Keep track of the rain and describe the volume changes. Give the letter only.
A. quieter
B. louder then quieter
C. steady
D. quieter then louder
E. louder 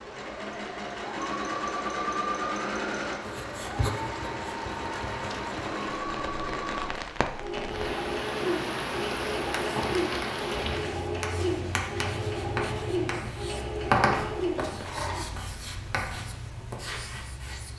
B.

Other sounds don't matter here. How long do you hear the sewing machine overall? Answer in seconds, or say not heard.
15 s.